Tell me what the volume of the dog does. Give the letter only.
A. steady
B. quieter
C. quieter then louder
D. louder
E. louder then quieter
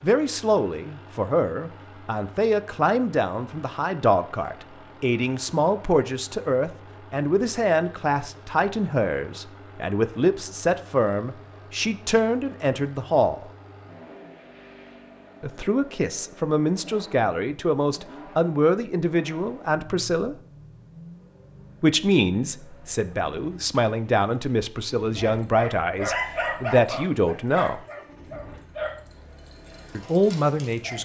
B.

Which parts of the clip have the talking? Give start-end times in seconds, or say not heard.
0.0-13.4, 15.4-20.4, 21.8-27.8, 29.9-31.0.